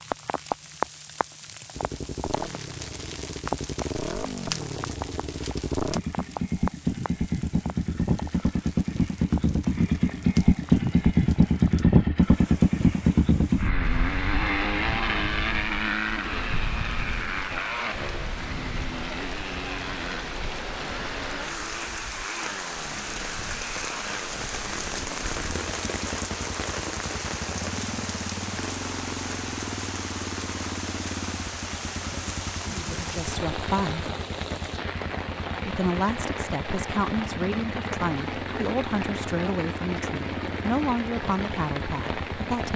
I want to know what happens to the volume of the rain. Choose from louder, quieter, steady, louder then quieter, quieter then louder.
quieter then louder.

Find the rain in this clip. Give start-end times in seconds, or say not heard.
0.0-42.7.